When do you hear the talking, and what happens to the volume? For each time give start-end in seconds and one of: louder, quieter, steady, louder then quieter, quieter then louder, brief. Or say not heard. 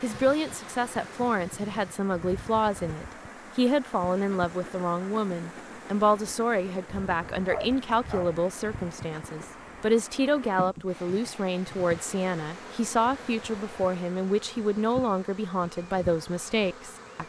0.0-17.2 steady.